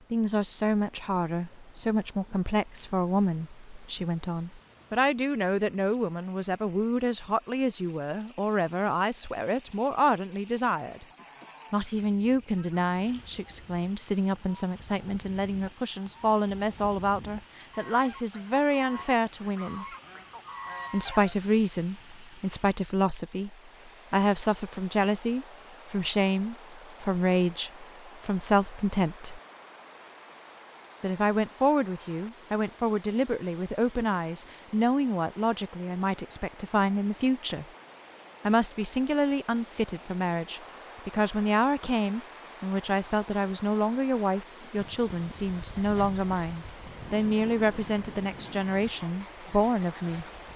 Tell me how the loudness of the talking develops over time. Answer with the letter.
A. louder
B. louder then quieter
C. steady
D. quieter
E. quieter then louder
C.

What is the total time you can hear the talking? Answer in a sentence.
The talking can be heard for 46 seconds in total.